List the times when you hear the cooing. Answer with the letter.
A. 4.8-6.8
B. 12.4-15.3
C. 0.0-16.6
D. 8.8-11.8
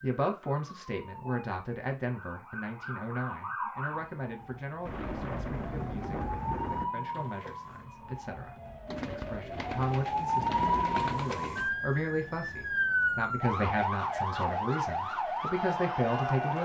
D.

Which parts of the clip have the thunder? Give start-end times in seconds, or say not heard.
4.8-6.8.